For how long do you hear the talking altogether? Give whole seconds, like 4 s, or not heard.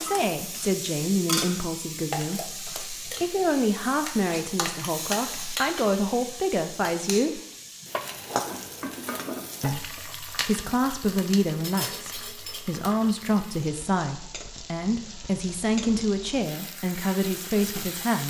16 s.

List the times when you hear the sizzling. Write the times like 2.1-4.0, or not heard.
0.0-18.2.